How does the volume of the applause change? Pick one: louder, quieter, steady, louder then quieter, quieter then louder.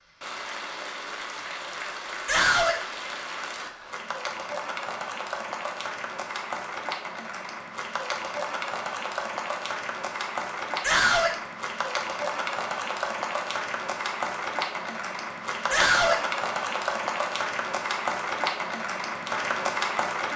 louder.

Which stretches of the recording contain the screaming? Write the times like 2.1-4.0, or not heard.
2.2-2.8, 10.8-11.3, 15.7-16.2.